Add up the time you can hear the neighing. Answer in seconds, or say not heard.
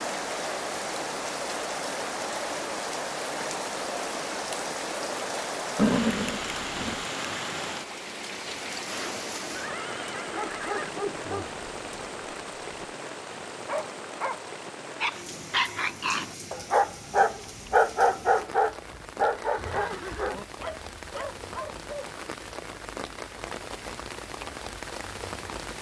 4 s.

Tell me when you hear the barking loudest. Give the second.
18 s.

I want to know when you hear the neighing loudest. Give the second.
6 s.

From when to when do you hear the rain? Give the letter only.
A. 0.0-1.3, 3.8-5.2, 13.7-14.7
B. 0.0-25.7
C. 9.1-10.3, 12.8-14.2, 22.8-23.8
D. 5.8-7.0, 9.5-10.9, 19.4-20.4
B.